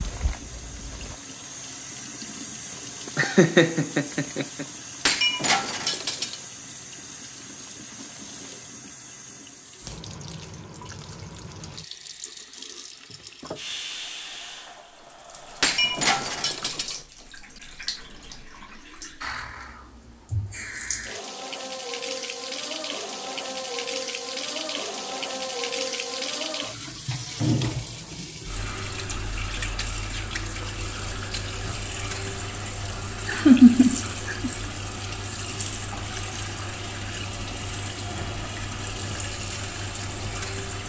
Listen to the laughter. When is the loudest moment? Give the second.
34 s.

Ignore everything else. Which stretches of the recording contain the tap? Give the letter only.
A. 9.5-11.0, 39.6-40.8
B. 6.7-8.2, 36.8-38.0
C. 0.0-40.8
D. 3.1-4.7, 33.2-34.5
C.